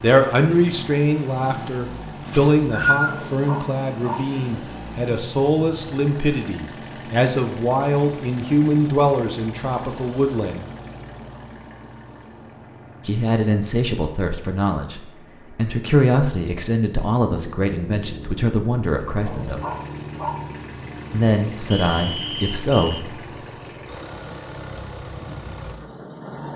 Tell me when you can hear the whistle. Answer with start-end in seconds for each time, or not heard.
2.3-3.2, 21.7-23.1.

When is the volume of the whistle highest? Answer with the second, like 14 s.
3 s.